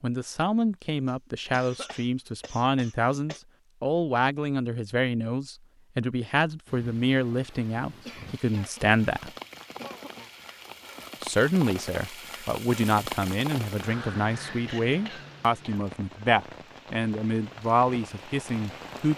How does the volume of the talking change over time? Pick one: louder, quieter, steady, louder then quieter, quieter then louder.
steady.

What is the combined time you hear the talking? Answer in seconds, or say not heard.
17 s.